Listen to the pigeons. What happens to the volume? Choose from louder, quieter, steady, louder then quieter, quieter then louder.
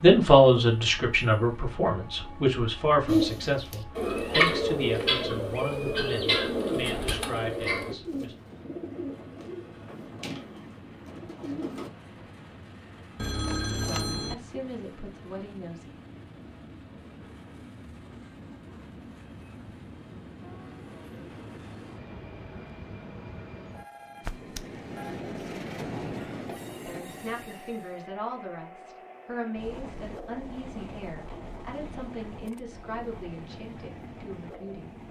quieter.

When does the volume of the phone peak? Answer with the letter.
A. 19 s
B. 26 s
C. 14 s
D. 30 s
C.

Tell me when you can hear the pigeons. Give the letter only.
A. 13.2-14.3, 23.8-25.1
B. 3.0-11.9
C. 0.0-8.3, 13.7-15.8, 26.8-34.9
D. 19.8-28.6
B.